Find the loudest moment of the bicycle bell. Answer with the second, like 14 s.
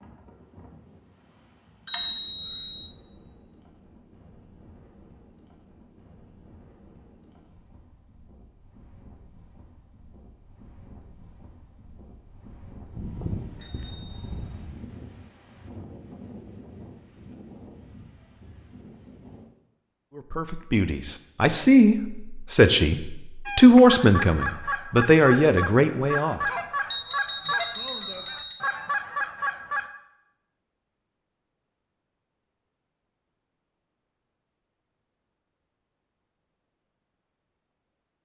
2 s.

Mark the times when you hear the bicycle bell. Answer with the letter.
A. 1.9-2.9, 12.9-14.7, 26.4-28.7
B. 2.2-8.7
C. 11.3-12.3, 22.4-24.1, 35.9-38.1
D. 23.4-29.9
A.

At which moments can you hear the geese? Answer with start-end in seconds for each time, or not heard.
23.4-29.9.